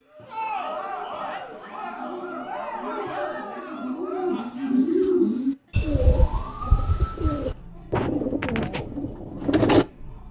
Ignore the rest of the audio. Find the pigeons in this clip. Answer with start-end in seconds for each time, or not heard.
1.5-9.8.